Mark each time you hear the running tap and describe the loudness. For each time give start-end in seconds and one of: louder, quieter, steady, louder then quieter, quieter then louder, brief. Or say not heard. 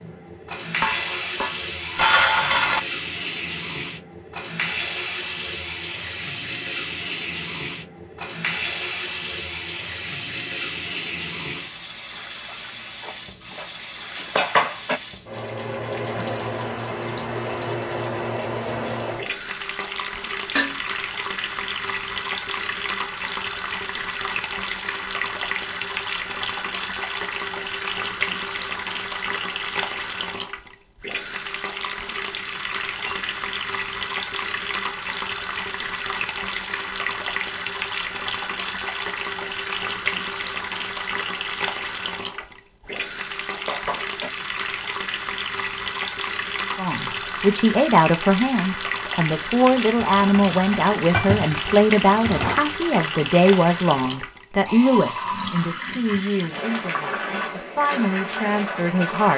0.0-59.3 steady.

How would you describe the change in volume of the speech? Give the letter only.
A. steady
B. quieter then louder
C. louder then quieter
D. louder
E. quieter
E.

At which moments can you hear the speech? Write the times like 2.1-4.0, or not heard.
46.8-59.3.